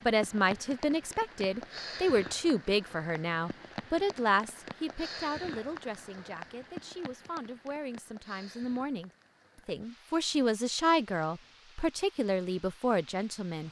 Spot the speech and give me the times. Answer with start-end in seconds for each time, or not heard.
0.1-13.6.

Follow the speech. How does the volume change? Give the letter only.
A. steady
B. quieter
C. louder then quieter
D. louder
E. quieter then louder
E.